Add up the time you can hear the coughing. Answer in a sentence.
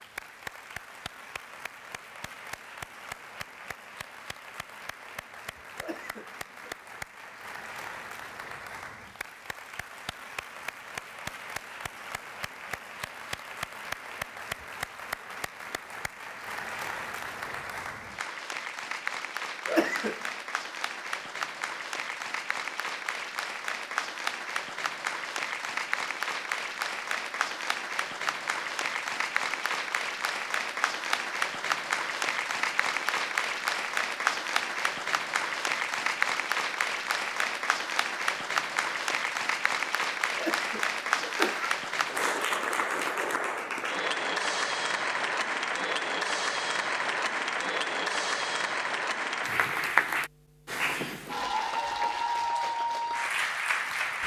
The coughing can be heard for 3 seconds in total.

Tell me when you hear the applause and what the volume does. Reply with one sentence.
You can hear the applause from 0.0 to 54.2 s, getting louder.